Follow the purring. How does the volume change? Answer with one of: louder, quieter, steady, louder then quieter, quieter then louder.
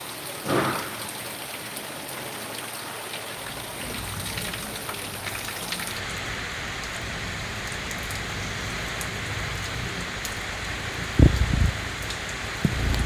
louder.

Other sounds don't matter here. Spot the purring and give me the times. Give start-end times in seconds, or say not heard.
3.6-13.0.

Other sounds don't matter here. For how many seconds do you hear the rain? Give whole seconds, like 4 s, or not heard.
13 s.